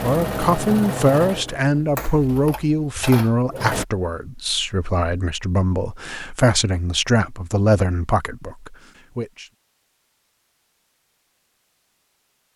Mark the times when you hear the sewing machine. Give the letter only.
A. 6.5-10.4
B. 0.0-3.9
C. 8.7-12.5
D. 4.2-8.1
B.